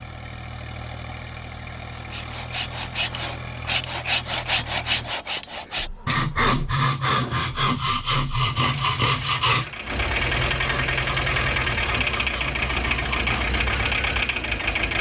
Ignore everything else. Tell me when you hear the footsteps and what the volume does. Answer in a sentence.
The footsteps can't be heard in this clip.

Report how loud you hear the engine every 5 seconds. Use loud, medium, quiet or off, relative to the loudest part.
quiet, quiet, loud.